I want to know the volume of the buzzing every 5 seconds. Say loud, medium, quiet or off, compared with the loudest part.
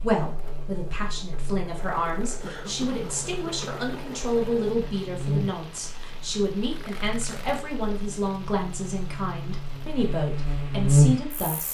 quiet, quiet, loud.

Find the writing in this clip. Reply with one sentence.
The writing can't be heard in this clip.